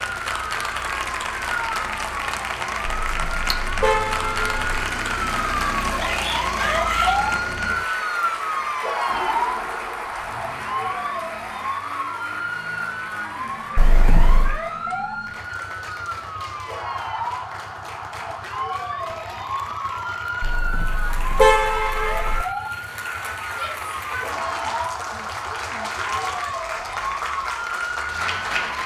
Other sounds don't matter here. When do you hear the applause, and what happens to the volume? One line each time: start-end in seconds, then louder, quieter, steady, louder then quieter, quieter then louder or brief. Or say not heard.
0.0-28.8 quieter then louder.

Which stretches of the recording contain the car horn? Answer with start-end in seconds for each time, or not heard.
3.0-4.6, 13.8-14.6, 20.4-22.4.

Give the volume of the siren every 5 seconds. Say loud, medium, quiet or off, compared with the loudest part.
medium, loud, medium, medium, medium, medium.